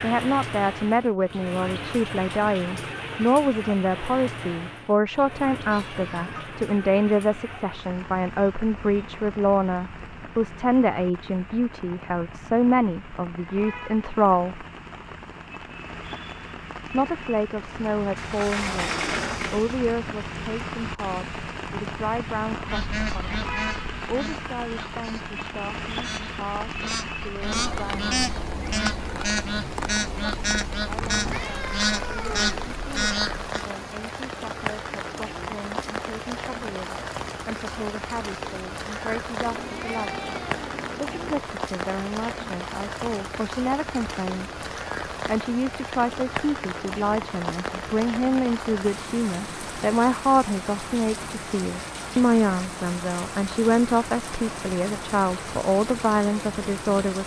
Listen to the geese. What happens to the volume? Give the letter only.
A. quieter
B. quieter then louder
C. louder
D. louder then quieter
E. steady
C.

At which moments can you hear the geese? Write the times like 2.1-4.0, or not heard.
22.6-33.6.